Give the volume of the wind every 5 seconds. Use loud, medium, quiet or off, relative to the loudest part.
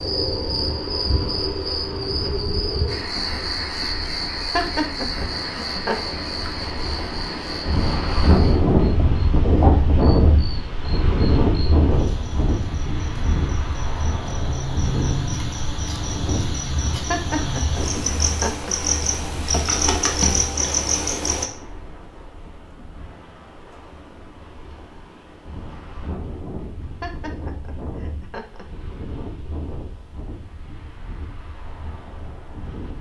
quiet, loud, loud, medium, quiet, quiet, quiet.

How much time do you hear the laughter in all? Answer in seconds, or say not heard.
5 s.